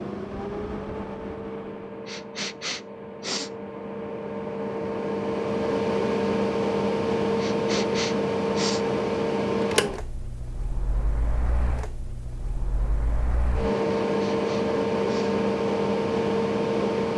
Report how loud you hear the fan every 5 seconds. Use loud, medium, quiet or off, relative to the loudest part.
medium, loud, medium, loud.